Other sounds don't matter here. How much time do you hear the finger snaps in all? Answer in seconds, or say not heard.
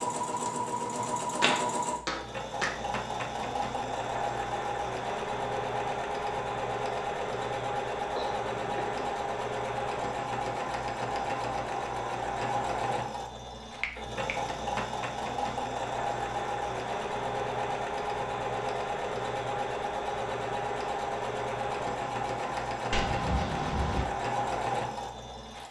3 s.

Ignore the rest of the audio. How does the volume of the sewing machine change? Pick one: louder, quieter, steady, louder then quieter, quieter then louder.
steady.